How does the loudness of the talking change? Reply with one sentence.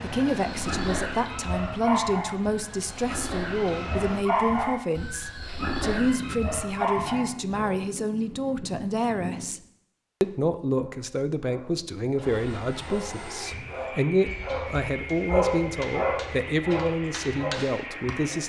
The loudness of the talking stays about the same.